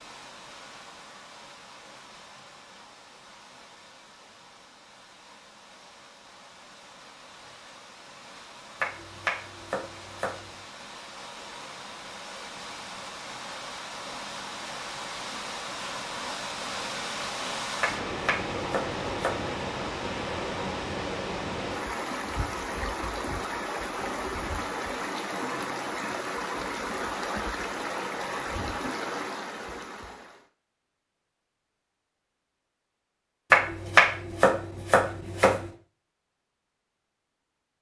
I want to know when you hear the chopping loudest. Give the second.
34 s.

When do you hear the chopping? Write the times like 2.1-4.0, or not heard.
8.8-10.6, 17.8-19.5, 33.5-35.7.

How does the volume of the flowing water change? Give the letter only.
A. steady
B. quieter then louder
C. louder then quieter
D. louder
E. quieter
D.